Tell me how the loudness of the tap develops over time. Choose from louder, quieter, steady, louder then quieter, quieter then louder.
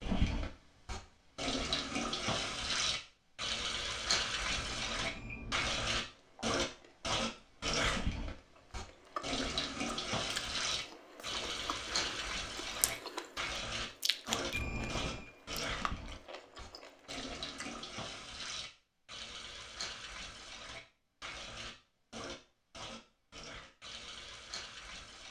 quieter.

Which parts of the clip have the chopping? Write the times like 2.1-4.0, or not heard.
not heard.